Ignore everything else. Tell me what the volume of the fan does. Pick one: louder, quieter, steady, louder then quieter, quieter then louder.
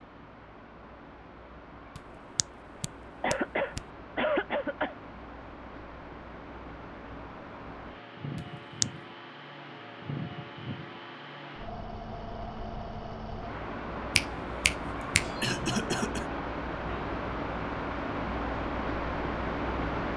louder.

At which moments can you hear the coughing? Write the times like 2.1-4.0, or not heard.
3.2-5.0, 15.0-16.2.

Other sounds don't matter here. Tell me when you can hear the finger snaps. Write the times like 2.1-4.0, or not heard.
1.9-3.8, 8.3-8.8, 14.2-15.6.